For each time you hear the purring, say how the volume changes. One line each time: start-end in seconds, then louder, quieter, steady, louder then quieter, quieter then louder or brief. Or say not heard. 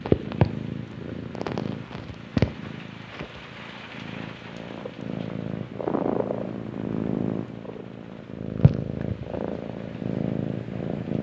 0.0-11.1 quieter then louder.